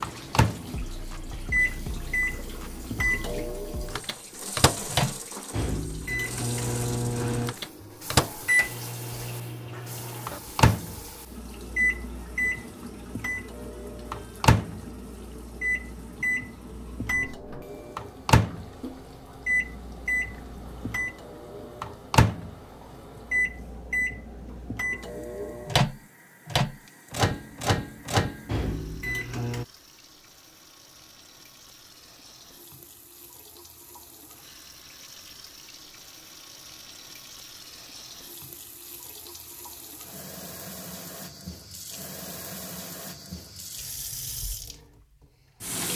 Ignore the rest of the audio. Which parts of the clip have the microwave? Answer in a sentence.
You can hear the microwave from 0.0 to 29.6 s.